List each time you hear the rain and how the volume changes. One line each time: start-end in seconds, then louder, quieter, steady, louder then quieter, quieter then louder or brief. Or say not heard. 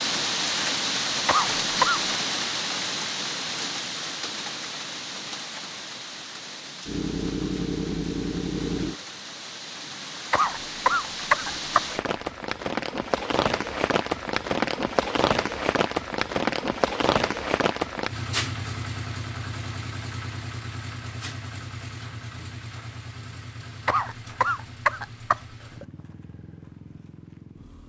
0.0-18.1 quieter then louder.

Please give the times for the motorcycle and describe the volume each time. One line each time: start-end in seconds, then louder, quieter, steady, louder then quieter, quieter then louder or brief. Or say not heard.
6.8-8.9 brief
18.1-27.8 quieter.